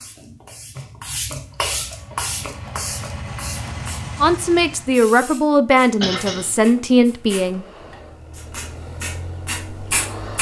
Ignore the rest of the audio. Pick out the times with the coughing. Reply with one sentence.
You can hear the coughing from 6.0 to 6.5 s.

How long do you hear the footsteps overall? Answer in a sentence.
You can't hear the footsteps here.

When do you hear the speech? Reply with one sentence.
The speech can be heard from 4.2 to 7.7 s.